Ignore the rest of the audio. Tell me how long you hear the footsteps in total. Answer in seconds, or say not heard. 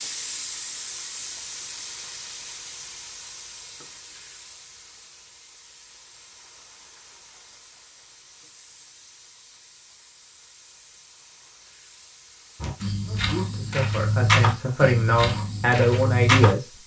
4 s.